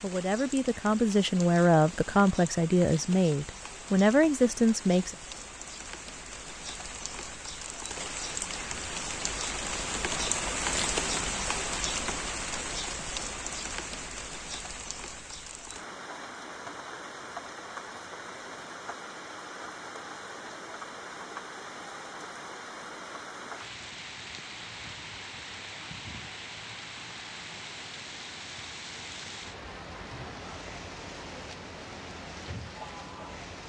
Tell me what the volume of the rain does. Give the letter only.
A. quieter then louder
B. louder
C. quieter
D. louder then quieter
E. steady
D.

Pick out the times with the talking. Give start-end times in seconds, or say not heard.
0.0-5.2.